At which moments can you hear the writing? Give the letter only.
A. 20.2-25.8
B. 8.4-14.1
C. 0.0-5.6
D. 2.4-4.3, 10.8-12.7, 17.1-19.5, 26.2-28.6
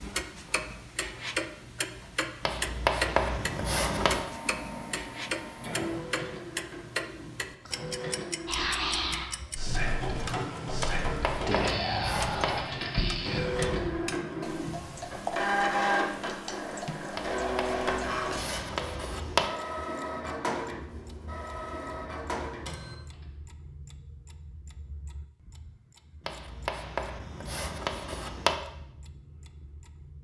D.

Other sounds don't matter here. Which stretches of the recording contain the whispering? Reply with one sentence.
The whispering can be heard from 8.4 to 14.1 s.